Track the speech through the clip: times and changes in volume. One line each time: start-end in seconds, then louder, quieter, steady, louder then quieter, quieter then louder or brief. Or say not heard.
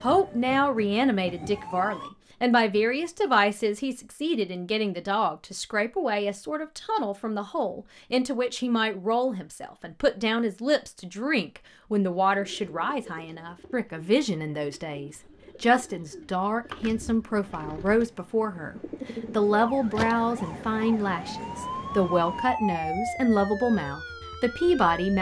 0.0-25.1 steady.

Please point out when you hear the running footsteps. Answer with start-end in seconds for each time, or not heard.
not heard.